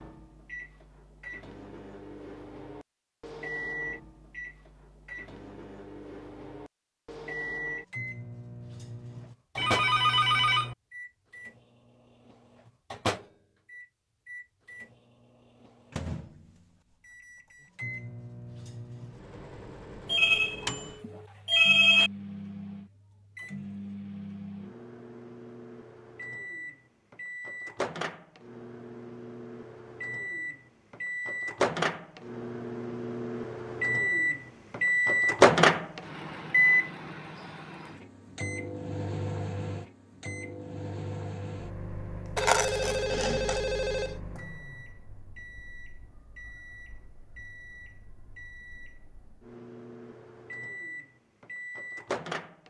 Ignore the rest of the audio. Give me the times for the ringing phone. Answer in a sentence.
The ringing phone can be heard from 9.6 to 10.8 s, from 20.1 to 22.1 s and from 42.4 to 44.1 s.